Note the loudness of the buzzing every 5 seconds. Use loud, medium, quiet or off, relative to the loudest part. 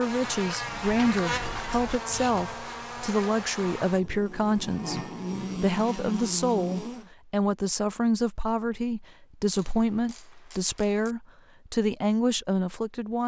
loud, loud, off.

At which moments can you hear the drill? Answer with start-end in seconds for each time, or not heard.
not heard.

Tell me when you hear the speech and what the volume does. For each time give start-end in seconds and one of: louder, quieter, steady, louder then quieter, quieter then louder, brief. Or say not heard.
0.0-13.2 steady.